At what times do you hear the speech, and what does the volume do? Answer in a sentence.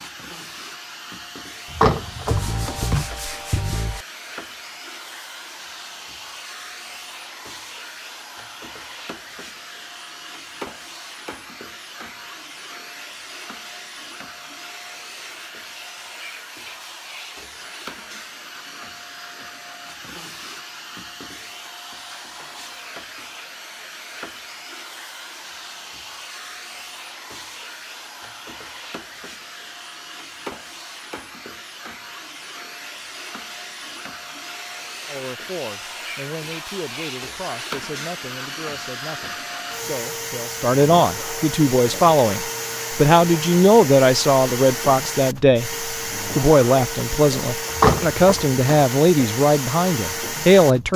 The speech can be heard from 35.0 to 50.9 s, getting louder.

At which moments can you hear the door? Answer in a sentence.
You can hear the door from 1.7 to 2.8 s and from 47.7 to 48.6 s.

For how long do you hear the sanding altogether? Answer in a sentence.
You can hear the sanding for 2 seconds altogether.